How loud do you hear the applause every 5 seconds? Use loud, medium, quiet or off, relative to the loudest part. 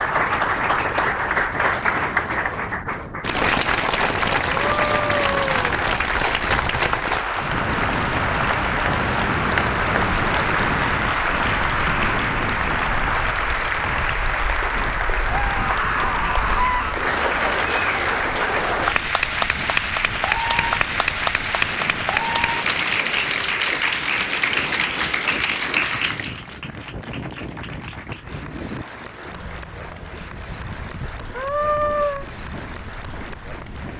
loud, loud, loud, loud, loud, medium, quiet.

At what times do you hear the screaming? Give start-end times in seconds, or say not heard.
4.5-5.6, 15.3-16.9, 31.4-32.2.